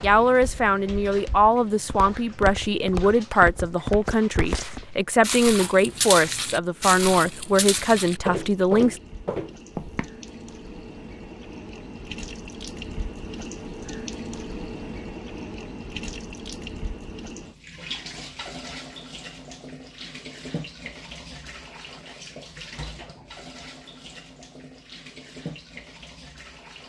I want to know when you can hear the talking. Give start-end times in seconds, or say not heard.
0.0-9.0.